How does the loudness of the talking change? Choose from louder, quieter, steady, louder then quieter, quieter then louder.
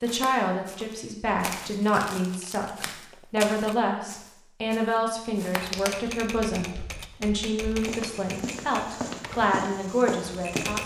steady.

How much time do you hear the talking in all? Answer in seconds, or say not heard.
11 s.